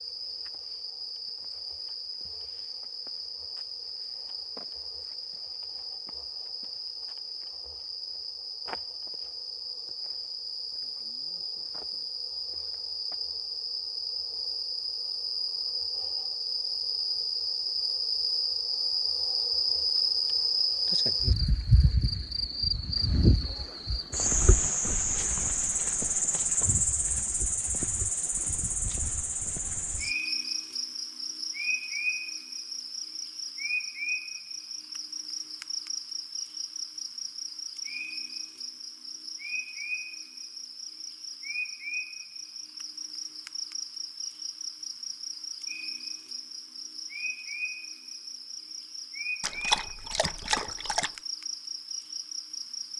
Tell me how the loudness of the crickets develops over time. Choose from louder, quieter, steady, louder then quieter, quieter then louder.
louder then quieter.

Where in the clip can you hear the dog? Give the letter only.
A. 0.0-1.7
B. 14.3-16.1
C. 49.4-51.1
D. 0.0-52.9
C.